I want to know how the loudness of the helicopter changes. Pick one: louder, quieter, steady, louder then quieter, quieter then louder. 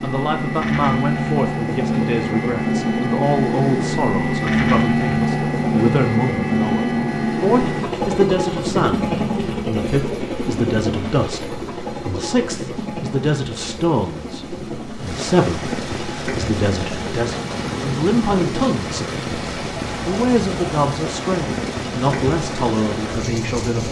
quieter.